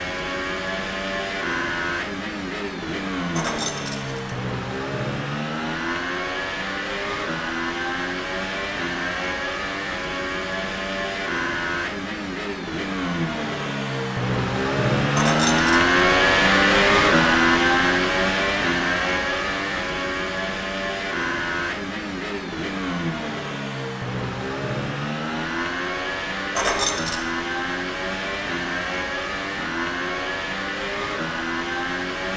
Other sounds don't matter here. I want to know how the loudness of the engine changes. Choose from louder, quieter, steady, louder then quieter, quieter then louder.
louder then quieter.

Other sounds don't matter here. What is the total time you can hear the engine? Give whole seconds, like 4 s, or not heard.
32 s.